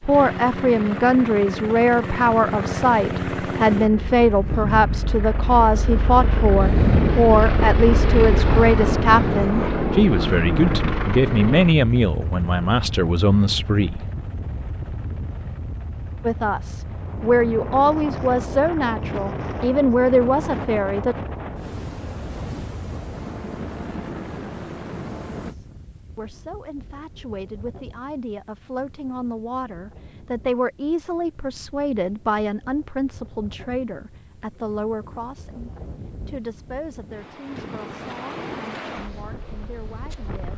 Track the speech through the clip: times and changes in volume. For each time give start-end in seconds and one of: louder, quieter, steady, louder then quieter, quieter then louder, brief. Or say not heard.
0.0-14.1 steady
16.2-21.1 steady
25.4-40.5 louder then quieter.